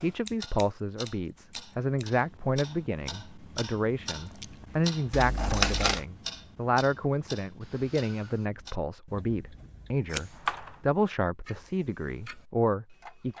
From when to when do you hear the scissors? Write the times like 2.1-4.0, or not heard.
0.2-2.2, 5.1-6.0, 10.1-10.8.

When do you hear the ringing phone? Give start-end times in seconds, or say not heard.
not heard.